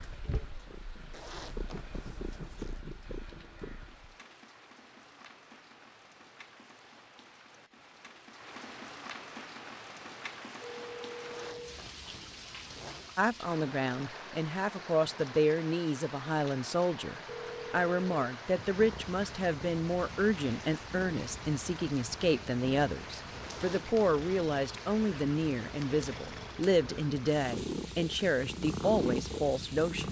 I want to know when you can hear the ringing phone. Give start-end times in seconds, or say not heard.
10.6-11.8, 17.2-18.3.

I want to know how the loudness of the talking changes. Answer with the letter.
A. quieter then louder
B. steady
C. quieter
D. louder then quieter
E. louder
B.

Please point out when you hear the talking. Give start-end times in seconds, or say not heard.
13.2-30.0.